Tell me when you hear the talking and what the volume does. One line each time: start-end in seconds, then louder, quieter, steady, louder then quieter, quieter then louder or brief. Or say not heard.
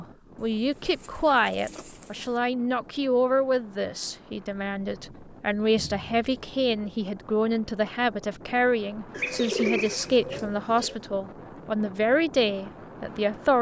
0.0-13.5 steady.